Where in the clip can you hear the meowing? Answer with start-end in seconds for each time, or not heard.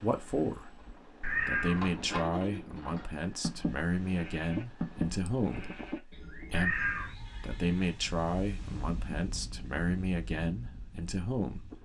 1.2-2.1, 6.5-7.2.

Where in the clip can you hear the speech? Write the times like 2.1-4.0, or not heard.
0.0-0.8, 1.4-6.8, 7.4-11.7.